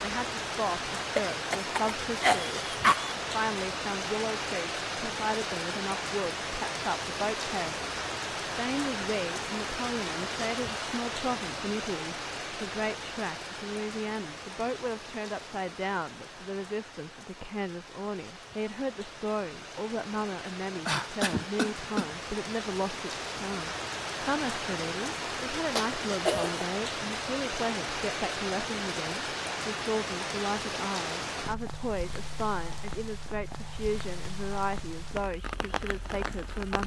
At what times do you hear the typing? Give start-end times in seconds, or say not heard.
not heard.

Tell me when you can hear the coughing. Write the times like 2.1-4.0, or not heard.
1.1-3.1, 20.9-22.1, 25.8-26.6.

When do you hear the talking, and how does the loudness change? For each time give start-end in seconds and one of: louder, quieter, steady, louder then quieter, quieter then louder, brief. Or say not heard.
0.0-36.8 steady.